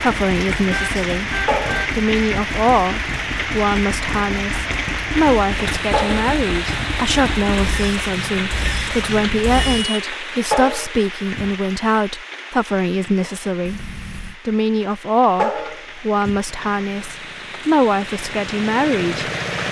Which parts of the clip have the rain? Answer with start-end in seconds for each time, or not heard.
0.0-19.6.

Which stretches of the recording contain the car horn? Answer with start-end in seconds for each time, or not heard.
0.7-1.9, 9.5-10.4, 13.7-14.4.